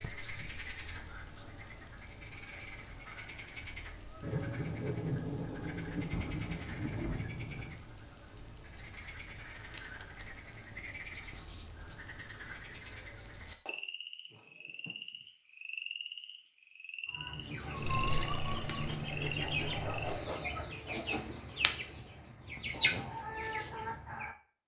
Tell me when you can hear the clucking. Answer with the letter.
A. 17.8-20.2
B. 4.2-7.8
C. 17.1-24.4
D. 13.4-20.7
C.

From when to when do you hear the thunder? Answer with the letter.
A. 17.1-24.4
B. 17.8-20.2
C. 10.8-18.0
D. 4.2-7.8
D.